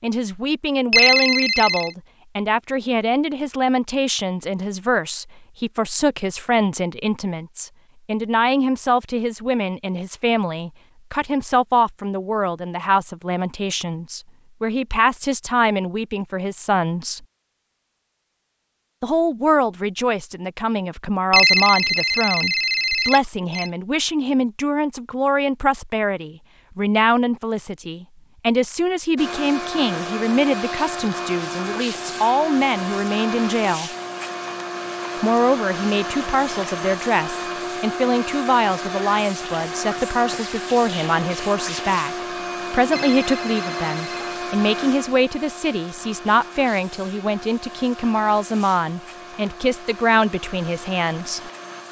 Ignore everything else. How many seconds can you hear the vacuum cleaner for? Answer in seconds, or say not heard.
23 s.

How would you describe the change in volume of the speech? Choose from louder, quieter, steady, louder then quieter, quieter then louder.
steady.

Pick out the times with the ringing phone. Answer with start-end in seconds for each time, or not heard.
0.9-1.9, 21.3-23.7, 42.9-44.3.